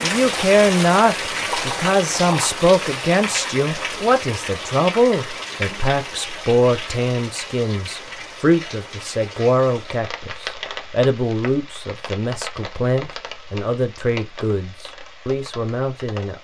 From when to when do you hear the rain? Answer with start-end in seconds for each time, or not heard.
0.0-16.3.